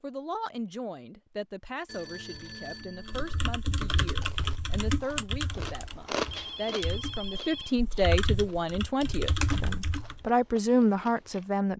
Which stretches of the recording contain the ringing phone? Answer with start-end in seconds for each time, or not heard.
1.9-3.5, 6.3-7.8.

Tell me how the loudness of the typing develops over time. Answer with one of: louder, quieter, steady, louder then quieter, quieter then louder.
quieter then louder.